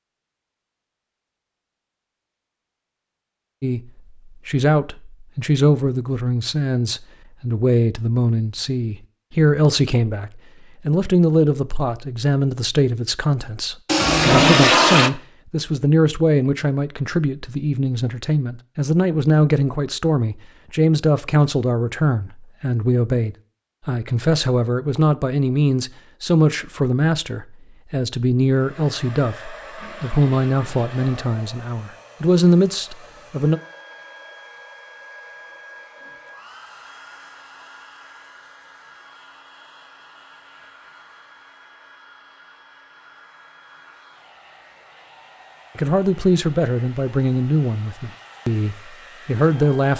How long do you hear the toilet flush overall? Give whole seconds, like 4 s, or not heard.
3 s.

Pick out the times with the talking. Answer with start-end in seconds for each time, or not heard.
3.6-33.6, 45.8-49.9.